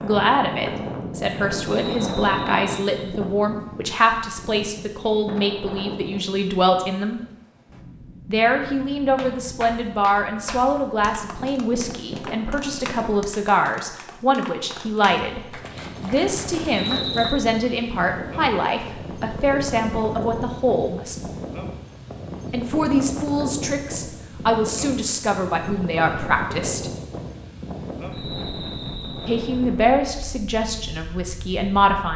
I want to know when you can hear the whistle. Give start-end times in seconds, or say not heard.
1.8-3.1, 16.7-17.4, 28.1-29.6.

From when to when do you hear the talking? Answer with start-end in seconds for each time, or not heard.
0.0-7.2, 8.2-21.3, 22.5-26.9, 29.2-32.1.